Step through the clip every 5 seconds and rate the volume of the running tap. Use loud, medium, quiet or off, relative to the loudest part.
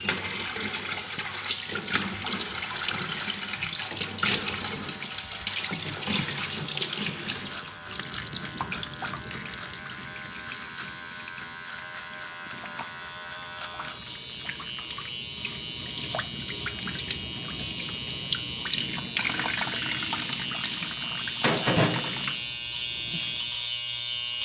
loud, loud, quiet, loud, loud.